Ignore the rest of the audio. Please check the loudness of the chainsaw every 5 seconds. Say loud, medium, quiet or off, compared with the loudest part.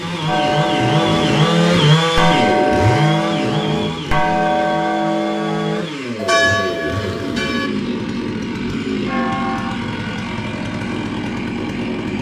loud, medium, medium.